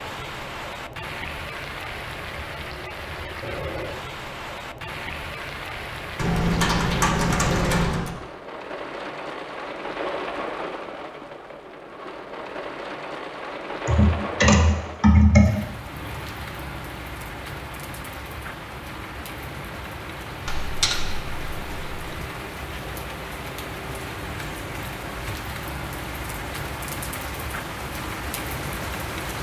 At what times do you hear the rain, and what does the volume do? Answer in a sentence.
The rain can be heard from 0.0 to 29.3 s, at a steady volume.